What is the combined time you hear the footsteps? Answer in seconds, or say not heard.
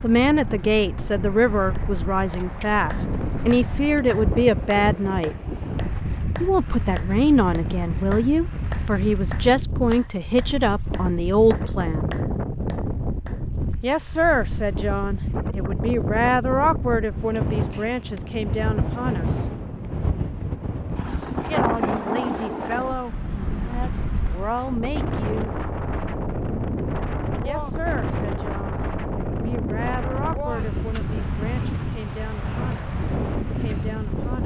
not heard.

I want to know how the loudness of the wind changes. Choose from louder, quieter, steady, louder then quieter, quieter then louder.
steady.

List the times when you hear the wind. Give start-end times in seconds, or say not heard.
0.0-34.4.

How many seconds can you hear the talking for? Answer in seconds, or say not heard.
28 s.